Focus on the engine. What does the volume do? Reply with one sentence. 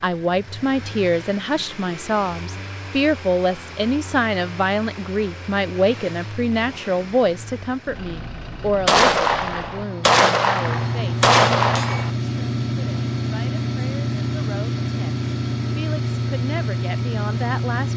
The volume of the engine goes up.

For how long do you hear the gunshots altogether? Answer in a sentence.
You can hear the gunshots for 3 seconds altogether.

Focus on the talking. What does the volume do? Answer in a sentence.
The volume of the talking goes down.